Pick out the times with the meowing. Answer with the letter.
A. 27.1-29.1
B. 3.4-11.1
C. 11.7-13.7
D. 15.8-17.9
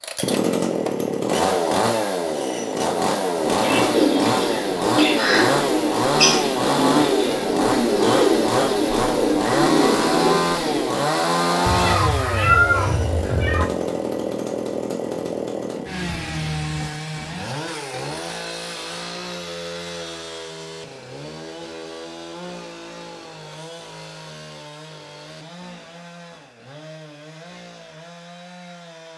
C.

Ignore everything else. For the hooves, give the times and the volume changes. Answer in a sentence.
The hooves can't be heard in this clip.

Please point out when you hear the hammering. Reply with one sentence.
You can't hear the hammering here.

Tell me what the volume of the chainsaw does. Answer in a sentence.
The loudness of the chainsaw goes down.